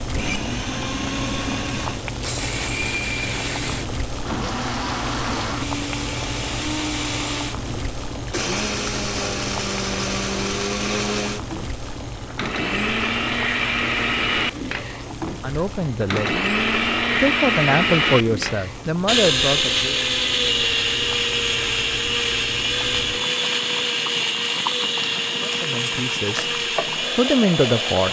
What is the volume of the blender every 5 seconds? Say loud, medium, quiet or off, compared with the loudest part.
medium, medium, loud, loud, loud, loud.